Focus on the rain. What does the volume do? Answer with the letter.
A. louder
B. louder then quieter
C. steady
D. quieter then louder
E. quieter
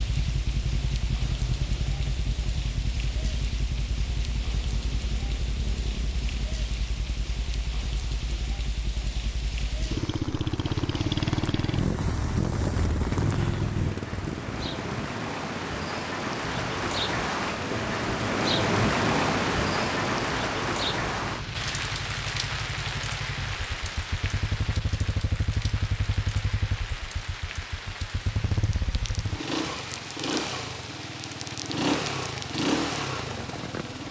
B.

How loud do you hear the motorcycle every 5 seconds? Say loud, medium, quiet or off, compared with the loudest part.
medium, medium, loud, medium, medium, medium, loud.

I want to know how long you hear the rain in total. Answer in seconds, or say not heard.
34 s.